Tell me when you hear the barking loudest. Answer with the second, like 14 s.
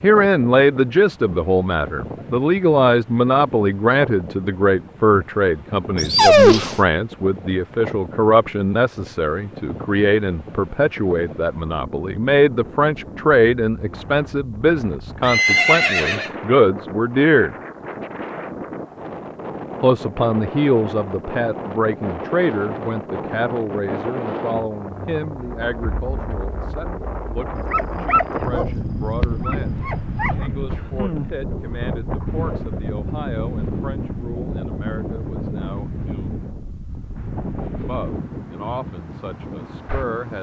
6 s.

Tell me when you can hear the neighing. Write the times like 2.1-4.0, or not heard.
15.2-16.3.